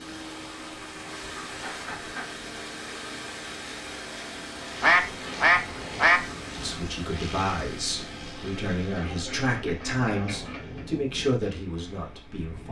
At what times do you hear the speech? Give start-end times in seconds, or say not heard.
6.5-12.6.